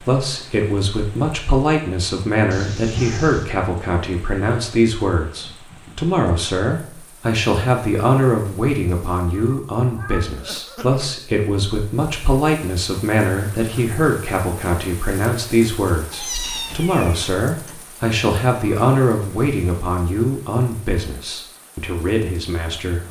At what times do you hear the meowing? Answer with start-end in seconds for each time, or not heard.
2.5-3.5, 9.3-10.2, 16.1-17.8.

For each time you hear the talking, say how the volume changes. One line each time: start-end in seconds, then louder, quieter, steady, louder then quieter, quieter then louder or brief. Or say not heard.
0.1-23.0 steady.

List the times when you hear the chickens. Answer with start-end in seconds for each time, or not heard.
not heard.